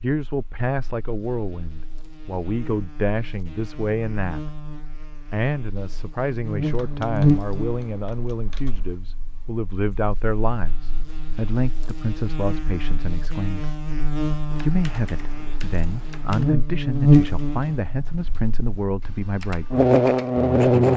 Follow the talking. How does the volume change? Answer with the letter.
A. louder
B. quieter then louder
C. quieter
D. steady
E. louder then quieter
D.